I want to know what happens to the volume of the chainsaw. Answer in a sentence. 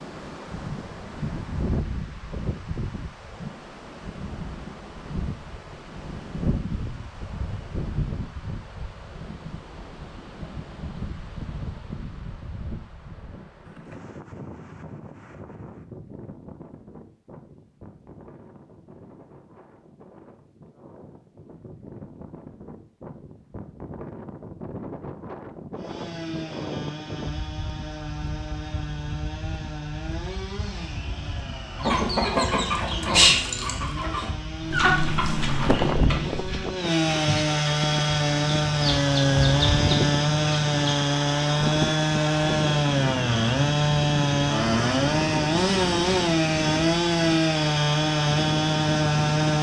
The volume of the chainsaw goes up.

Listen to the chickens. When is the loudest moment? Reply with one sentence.
The volume of the chickens peaks at 33 seconds.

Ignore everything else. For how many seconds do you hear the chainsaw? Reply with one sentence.
You can hear the chainsaw for 24 seconds altogether.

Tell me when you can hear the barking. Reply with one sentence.
You can't hear the barking here.